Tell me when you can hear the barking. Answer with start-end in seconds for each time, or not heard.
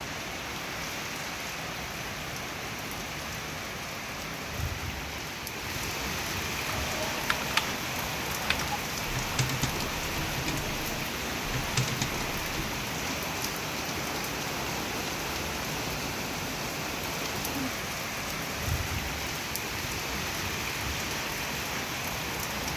not heard.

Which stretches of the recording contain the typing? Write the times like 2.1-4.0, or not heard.
6.6-12.8.